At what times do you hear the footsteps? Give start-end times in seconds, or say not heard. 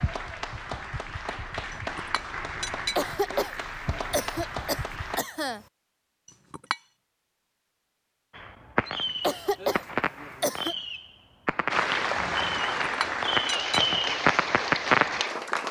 not heard.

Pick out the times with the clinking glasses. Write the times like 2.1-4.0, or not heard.
1.7-3.0, 6.2-6.8, 12.8-13.8.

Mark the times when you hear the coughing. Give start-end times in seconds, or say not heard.
3.0-5.7, 9.2-10.8.